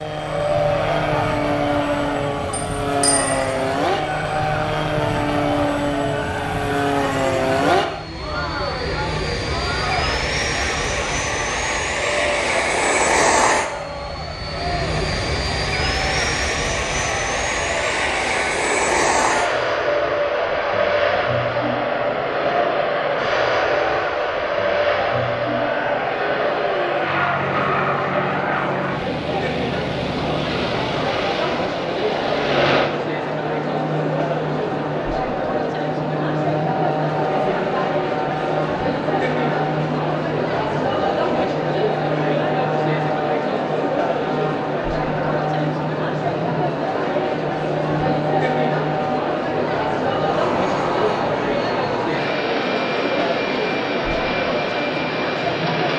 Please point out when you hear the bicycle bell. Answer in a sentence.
The bicycle bell can be heard from 2.5 to 3.5 s.